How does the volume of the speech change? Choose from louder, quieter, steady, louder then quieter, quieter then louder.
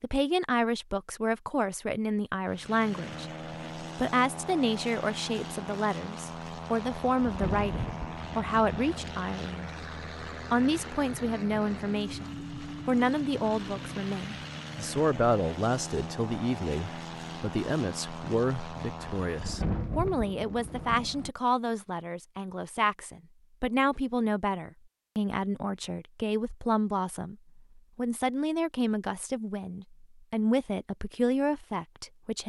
steady.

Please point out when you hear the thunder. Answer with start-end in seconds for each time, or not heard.
6.8-9.2, 19.0-21.3.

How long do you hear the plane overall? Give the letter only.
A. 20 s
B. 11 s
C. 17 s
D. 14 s
C.